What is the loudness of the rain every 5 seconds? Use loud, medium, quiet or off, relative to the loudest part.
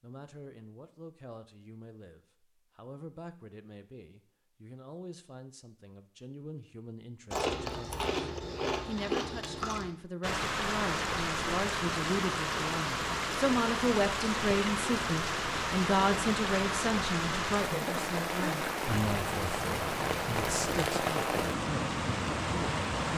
off, off, loud, loud, loud.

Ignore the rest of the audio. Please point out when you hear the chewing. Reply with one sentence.
The chewing can be heard from 7.3 to 9.9 s and from 18.9 to 20.9 s.